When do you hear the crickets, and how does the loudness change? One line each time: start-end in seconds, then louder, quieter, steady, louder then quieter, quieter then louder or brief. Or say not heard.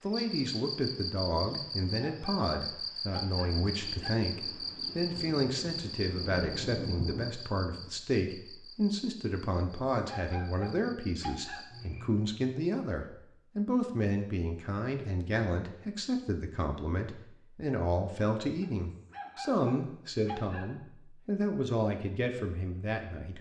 0.0-12.1 quieter.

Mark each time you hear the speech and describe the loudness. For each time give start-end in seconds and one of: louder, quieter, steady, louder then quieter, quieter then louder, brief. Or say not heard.
0.0-23.3 steady.